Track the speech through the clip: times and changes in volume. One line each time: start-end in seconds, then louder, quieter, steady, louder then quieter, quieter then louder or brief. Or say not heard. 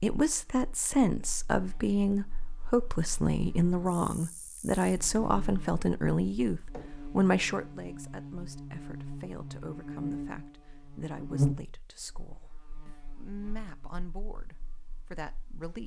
0.0-15.8 quieter.